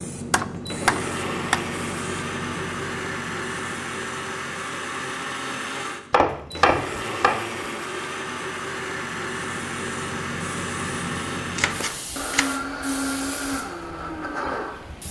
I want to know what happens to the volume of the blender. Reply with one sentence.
The loudness of the blender stays about the same.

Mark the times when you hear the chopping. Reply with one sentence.
The chopping can be heard from 0.3 to 1.6 s, from 6.1 to 7.6 s and from 11.6 to 12.6 s.